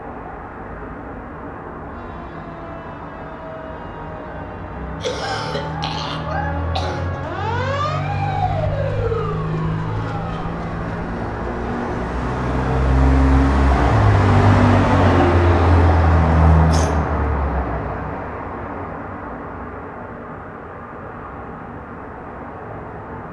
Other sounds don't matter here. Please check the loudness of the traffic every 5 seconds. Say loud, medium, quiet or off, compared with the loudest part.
quiet, medium, loud, loud, quiet.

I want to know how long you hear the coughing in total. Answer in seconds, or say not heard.
3 s.